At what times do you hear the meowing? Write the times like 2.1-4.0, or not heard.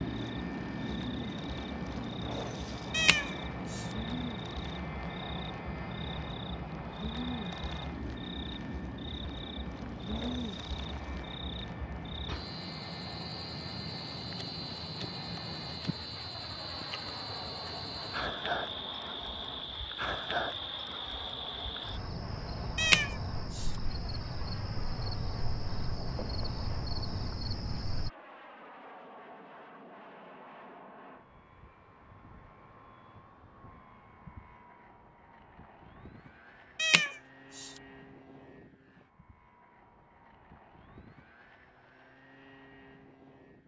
2.9-3.9, 22.8-23.6, 36.8-37.7.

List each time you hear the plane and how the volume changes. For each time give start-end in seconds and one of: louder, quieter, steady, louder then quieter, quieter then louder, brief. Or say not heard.
0.0-43.6 quieter.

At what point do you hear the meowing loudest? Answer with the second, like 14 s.
23 s.